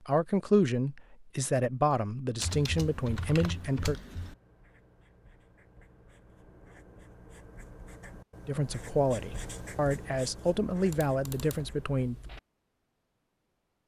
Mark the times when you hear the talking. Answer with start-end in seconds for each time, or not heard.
0.1-4.0, 8.4-12.2.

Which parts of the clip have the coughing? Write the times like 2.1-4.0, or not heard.
not heard.